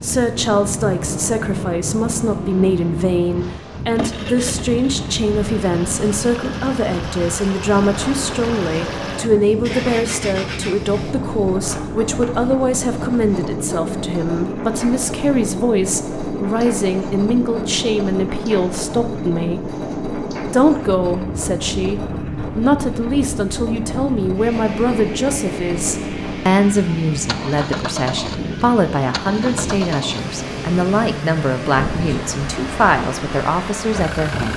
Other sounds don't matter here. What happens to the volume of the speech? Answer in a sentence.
The volume of the speech stays about the same.